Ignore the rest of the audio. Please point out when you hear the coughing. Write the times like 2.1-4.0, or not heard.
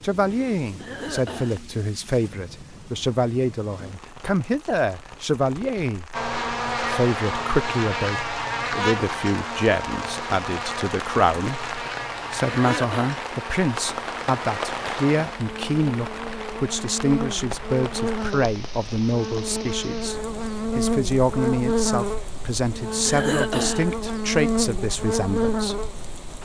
0.8-1.6, 12.6-13.2, 23.1-23.9.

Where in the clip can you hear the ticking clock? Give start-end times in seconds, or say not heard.
not heard.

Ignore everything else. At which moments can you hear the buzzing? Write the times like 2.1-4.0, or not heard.
6.1-26.3.